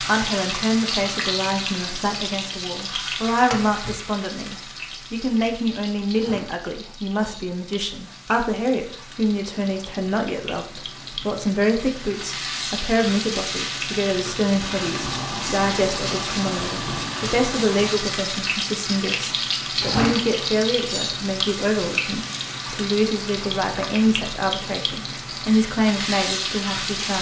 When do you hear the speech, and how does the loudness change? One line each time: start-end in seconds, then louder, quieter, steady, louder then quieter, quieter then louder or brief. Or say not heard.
0.0-27.1 steady.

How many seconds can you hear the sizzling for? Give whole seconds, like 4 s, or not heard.
27 s.